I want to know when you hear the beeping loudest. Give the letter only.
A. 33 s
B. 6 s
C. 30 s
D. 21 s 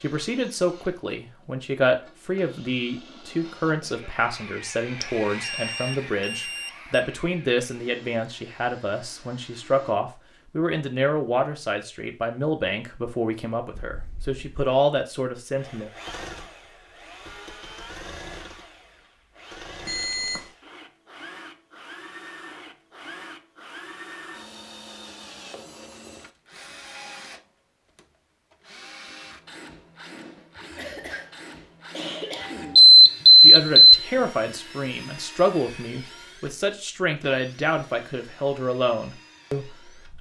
A.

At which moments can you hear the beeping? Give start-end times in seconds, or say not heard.
5.0-7.0, 19.9-20.5, 32.8-34.0.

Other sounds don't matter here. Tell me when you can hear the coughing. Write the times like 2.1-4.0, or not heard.
3.4-4.1, 13.8-14.4, 30.8-31.3, 31.9-32.8.